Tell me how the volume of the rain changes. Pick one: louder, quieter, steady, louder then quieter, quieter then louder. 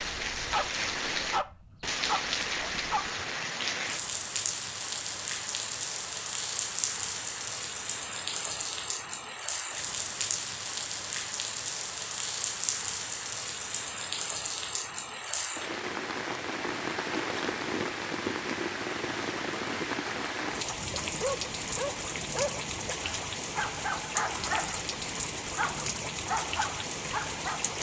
steady.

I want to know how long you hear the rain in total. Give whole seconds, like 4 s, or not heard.
28 s.